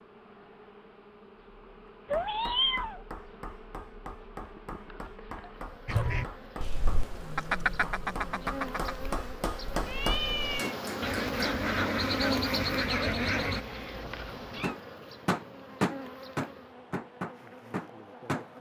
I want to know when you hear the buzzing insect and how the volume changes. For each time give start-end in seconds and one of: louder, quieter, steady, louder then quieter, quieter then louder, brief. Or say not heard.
0.0-18.5 louder then quieter.